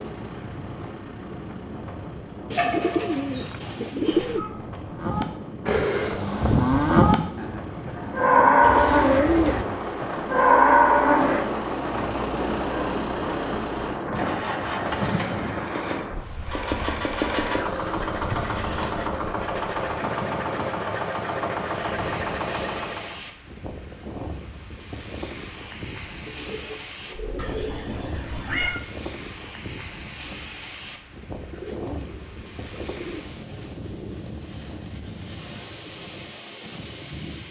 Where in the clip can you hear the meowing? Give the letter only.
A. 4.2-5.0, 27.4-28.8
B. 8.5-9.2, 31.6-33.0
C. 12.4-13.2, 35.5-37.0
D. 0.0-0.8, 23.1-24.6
A.